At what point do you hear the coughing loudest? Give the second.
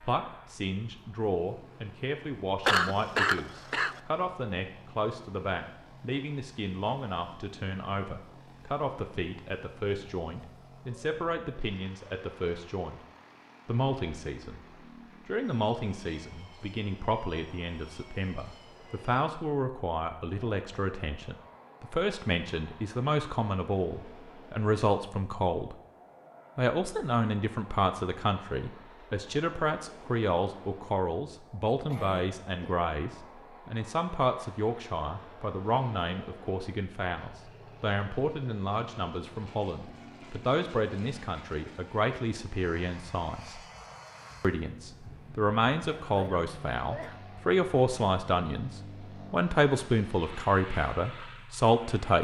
3 s.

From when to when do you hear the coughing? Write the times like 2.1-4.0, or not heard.
2.6-4.0, 31.9-32.8, 45.9-47.2.